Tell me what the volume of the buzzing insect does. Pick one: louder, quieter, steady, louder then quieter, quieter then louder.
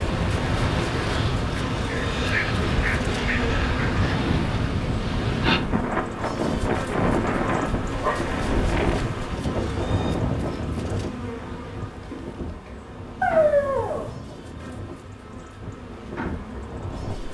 quieter.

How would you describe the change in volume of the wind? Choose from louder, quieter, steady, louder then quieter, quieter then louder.
quieter.